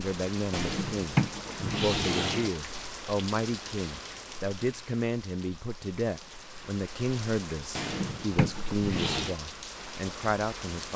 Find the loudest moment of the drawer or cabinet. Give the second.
1 s.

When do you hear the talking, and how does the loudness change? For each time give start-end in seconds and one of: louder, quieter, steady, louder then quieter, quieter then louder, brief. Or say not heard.
0.0-10.9 steady.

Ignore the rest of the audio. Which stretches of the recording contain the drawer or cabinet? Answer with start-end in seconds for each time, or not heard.
0.5-2.5, 7.8-9.3.